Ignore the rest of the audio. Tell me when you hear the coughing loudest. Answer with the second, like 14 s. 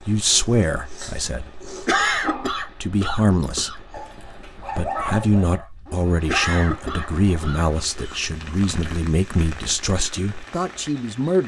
2 s.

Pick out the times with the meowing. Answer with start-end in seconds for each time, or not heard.
not heard.